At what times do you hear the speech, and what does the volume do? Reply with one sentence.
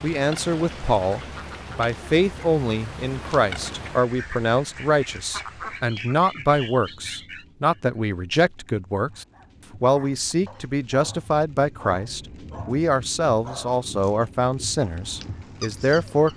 The speech can be heard from 0.0 to 16.3 s, at a steady volume.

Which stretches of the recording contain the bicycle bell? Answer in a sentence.
You can't hear the bicycle bell here.